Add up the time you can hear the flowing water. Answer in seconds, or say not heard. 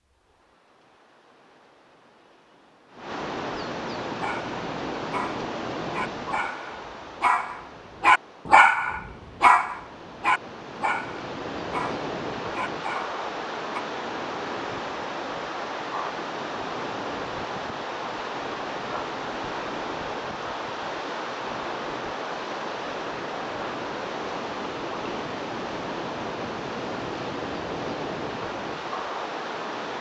30 s.